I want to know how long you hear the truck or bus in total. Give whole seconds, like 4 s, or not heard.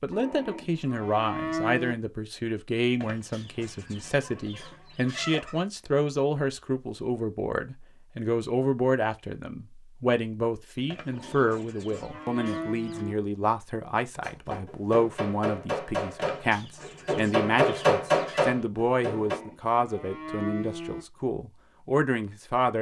not heard.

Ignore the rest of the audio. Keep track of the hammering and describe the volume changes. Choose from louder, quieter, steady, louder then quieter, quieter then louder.
louder.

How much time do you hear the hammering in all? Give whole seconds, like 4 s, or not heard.
5 s.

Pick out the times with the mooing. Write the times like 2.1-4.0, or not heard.
0.1-1.9, 11.1-13.2, 19.1-21.1.